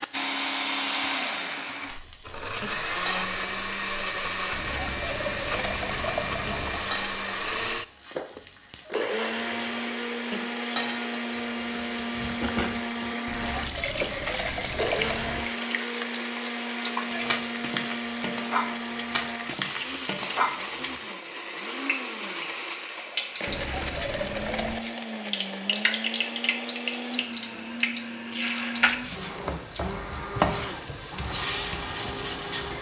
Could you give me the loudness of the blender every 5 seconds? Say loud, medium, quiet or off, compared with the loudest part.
loud, loud, loud, loud, medium, medium, medium.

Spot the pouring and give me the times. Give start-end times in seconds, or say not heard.
4.5-7.0, 13.2-15.5, 23.4-24.9.